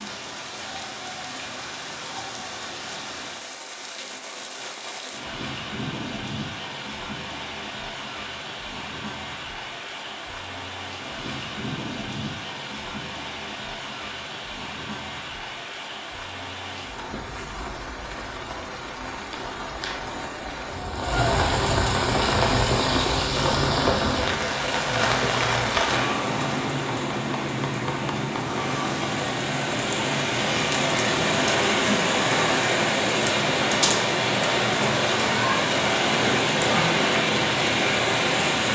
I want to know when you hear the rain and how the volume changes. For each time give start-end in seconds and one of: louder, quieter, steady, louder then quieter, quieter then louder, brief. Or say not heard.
0.0-38.6 louder.